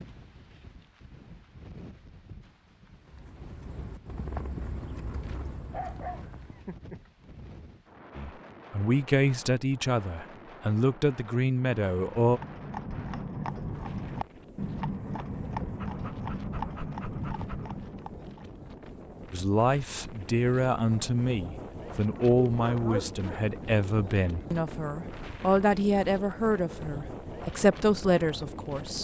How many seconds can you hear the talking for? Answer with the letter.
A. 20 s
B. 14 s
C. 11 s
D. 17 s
B.